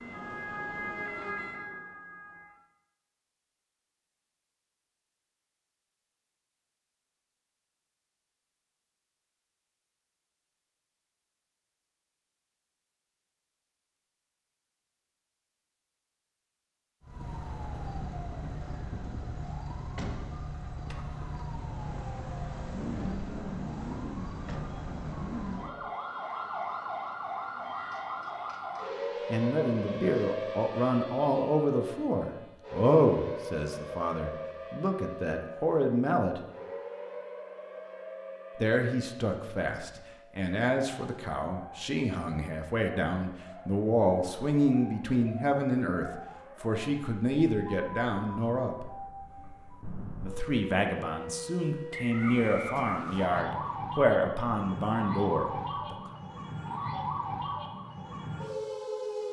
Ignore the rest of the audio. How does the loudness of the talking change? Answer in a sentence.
The loudness of the talking stays about the same.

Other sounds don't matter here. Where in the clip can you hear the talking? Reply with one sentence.
The talking can be heard from 29.3 to 36.4 s, from 38.5 to 48.9 s and from 50.2 to 56.0 s.